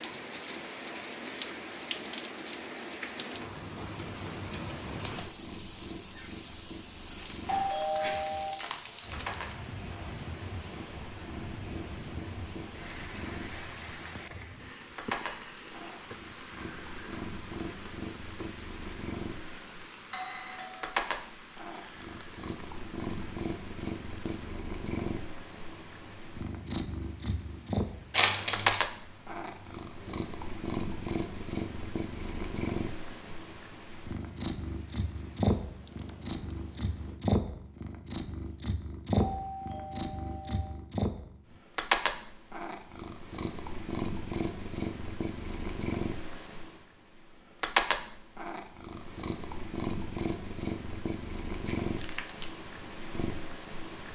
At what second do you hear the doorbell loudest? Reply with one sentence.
The loudest moment of the doorbell is at 8 seconds.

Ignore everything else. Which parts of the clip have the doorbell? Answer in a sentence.
The doorbell can be heard from 7.5 to 8.6 s, from 20.1 to 20.9 s and from 39.1 to 40.8 s.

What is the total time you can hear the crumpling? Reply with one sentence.
You can hear the crumpling for 4 seconds altogether.